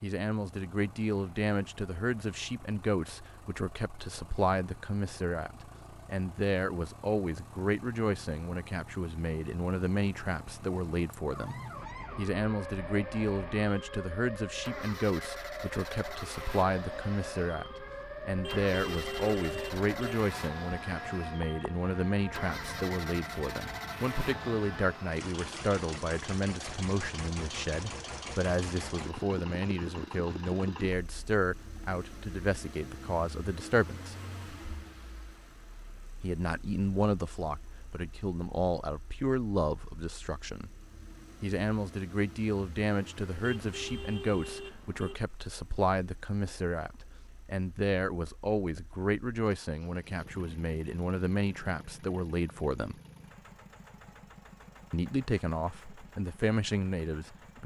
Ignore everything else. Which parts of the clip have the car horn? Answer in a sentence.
You can hear the car horn from 18.3 to 20.1 s and from 43.4 to 45.1 s.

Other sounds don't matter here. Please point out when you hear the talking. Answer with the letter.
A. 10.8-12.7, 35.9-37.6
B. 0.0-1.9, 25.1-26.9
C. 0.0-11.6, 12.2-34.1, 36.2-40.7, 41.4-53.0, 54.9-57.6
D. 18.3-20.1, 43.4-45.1
C.